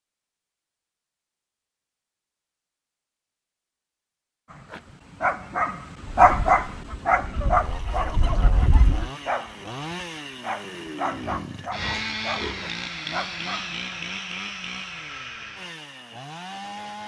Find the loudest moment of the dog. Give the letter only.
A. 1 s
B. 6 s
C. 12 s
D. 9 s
B.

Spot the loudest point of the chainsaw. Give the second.
12 s.